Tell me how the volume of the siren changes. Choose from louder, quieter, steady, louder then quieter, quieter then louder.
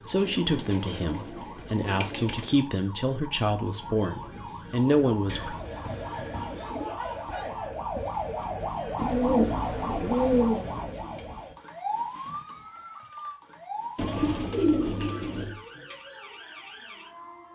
louder then quieter.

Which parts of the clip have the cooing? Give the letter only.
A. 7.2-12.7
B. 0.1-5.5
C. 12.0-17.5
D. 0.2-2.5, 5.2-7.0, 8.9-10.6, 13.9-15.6
D.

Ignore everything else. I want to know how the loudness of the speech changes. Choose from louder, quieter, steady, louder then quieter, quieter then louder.
louder.